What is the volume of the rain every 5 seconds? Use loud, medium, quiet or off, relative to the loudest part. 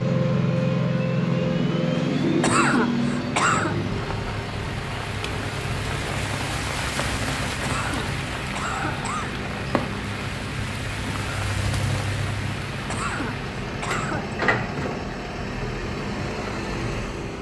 medium, loud, loud, off.